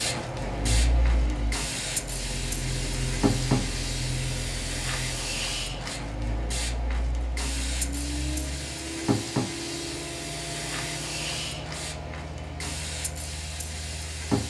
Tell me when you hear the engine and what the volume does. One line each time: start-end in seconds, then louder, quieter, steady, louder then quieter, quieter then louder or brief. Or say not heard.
0.2-14.4 quieter.